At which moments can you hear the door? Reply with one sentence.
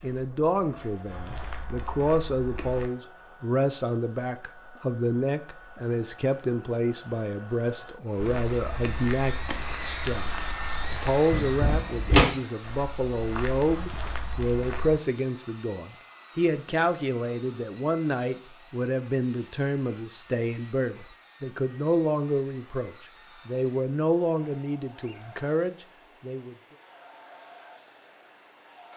The door can be heard from 11.3 to 12.2 s.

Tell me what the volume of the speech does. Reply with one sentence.
The volume of the speech stays about the same.